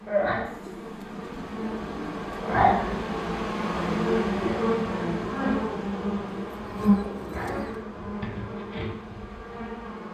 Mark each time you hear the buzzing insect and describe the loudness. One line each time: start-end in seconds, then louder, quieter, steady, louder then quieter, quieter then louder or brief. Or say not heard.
0.0-10.0 louder then quieter.